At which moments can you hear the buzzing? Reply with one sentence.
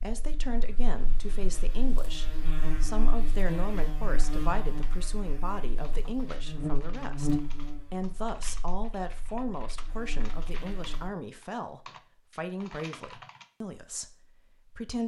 The buzzing can be heard from 0.0 to 11.1 s.